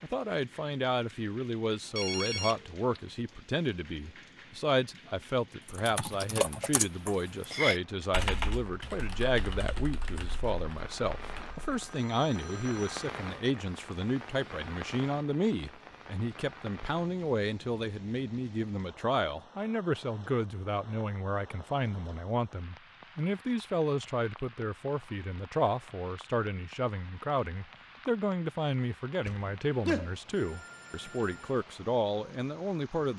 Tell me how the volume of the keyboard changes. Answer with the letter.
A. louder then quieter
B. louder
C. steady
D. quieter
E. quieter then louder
D.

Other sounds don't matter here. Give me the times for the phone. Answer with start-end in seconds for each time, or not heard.
1.9-3.0, 11.4-13.1, 29.2-31.5.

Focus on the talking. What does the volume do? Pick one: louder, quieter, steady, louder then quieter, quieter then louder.
steady.